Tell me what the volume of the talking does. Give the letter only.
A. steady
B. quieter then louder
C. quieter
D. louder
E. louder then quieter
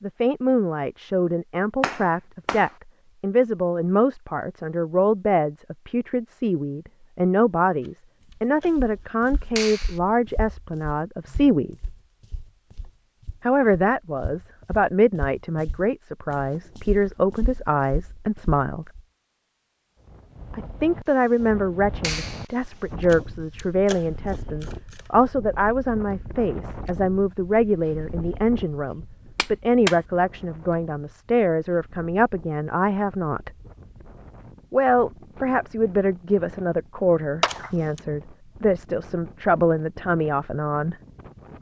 A.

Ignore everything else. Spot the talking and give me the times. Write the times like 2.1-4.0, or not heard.
0.0-11.8, 13.4-18.9, 20.5-33.5, 34.7-41.0.